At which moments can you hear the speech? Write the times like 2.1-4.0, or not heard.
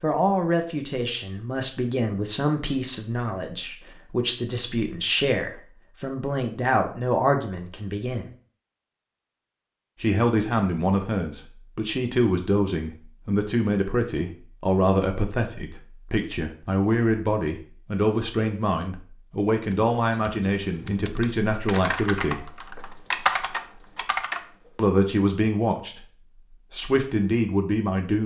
0.0-8.2, 10.0-22.4, 24.8-26.1, 26.7-28.2.